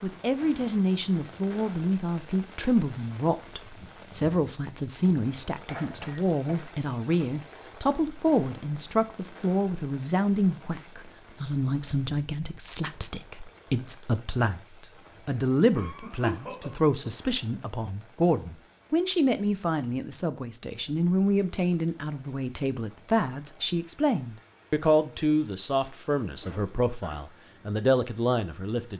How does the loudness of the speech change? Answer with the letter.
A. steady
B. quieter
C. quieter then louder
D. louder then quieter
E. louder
A.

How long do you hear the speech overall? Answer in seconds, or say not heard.
29 s.